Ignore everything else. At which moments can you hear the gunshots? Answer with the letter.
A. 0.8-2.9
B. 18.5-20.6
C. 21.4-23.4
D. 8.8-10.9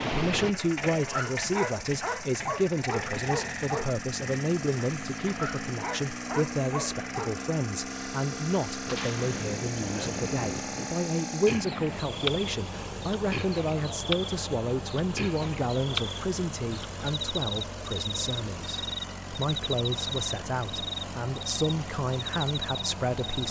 D.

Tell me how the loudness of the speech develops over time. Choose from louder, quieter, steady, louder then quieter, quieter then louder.
steady.